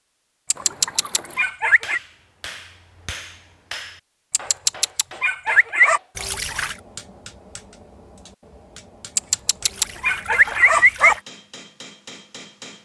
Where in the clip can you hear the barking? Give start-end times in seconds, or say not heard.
0.5-2.0, 4.3-6.0, 9.2-11.2.